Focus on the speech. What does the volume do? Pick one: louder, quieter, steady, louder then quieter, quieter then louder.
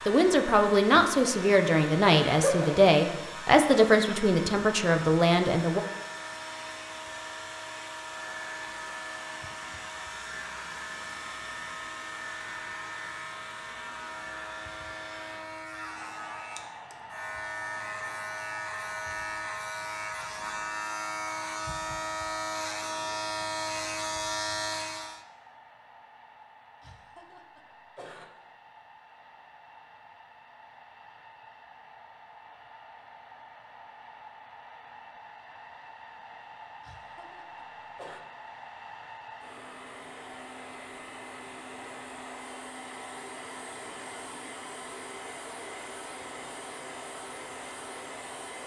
steady.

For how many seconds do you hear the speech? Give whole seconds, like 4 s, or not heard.
6 s.